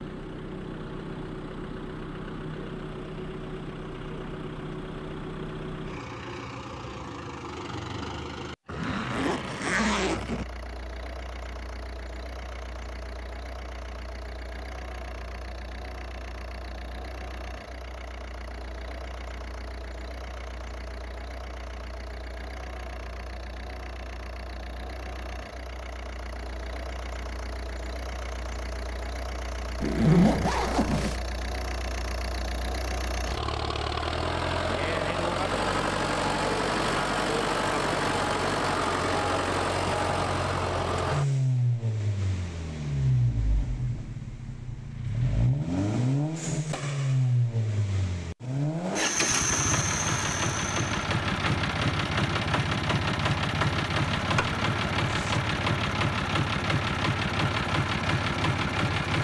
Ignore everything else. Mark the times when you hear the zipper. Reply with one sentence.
The zipper can be heard from 8.7 to 10.4 s, from 29.8 to 31.2 s and from 54.1 to 55.4 s.